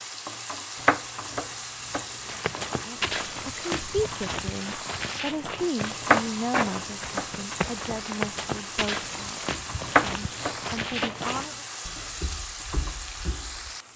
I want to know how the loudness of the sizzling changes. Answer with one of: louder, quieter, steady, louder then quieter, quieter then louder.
steady.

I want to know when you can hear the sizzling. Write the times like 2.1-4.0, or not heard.
0.0-13.9.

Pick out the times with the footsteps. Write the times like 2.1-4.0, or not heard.
2.2-13.7.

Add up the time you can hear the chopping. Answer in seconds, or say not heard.
5 s.